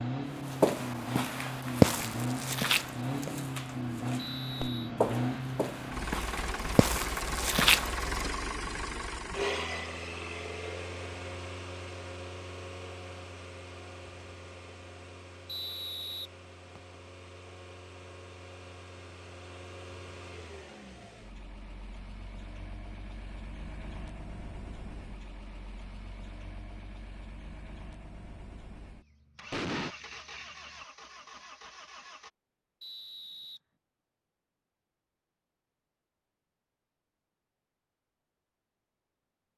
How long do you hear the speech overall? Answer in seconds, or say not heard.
not heard.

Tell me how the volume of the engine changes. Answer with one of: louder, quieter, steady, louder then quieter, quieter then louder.
quieter.